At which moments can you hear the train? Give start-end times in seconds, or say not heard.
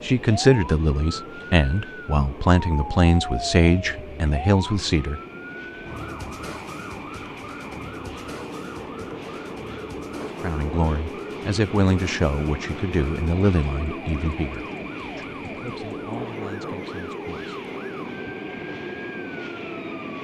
0.0-20.1.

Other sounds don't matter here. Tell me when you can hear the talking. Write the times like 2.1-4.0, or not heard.
0.0-5.2, 10.4-17.6.